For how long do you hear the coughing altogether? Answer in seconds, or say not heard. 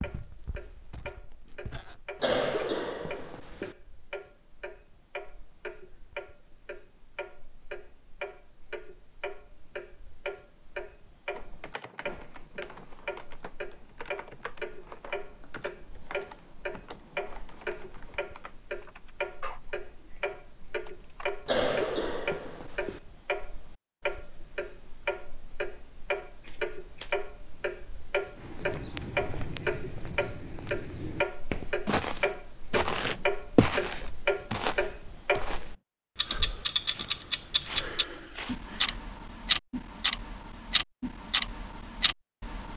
3 s.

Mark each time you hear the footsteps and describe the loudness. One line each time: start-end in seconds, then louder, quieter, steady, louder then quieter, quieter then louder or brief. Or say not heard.
0.0-2.2 brief
28.4-39.0 louder then quieter.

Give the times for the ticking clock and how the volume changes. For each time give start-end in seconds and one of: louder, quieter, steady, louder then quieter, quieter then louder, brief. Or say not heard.
0.0-42.7 louder.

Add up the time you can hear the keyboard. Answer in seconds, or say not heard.
10 s.